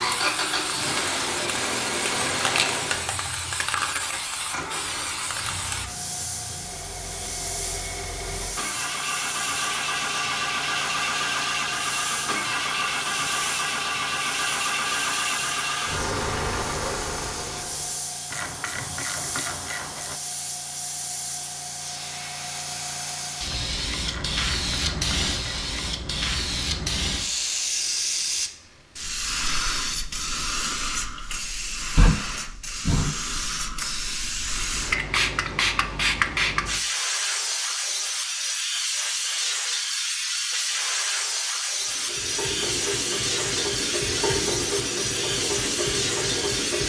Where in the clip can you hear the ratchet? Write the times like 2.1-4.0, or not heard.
18.3-20.1, 24.1-25.9.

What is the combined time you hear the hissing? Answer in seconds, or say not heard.
47 s.